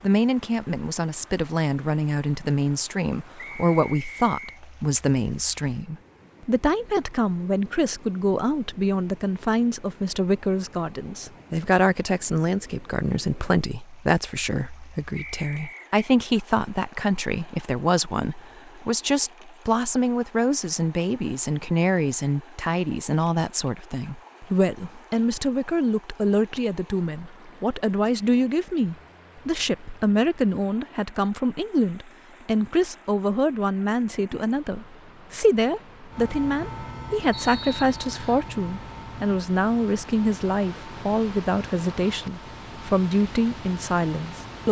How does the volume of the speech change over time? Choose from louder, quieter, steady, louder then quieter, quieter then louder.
steady.